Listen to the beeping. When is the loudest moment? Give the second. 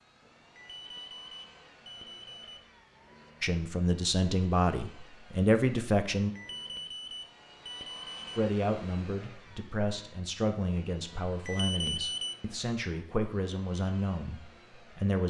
12 s.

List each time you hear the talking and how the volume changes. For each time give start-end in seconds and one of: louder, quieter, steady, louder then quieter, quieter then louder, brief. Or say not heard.
3.4-6.3 brief
8.3-15.2 steady.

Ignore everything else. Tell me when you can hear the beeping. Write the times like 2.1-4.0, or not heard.
0.2-2.7, 6.2-8.4, 11.1-12.3.